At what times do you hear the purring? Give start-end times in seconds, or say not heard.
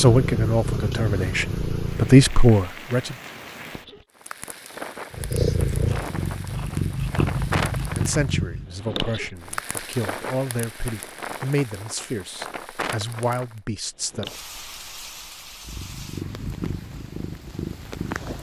0.0-2.3, 5.1-8.7, 15.6-18.3.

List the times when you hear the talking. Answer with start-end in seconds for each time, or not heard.
0.0-3.2, 8.0-14.3.